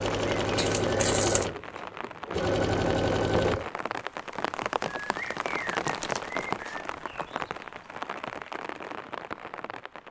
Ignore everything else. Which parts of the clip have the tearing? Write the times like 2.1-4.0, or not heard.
0.6-1.4, 5.8-6.8.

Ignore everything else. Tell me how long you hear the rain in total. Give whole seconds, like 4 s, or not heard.
10 s.